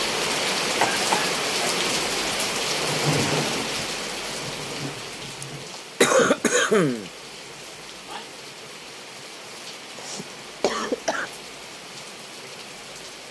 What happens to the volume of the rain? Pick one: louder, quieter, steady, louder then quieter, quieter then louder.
quieter.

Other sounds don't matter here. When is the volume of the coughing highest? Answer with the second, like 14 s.
6 s.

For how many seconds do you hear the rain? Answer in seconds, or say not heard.
13 s.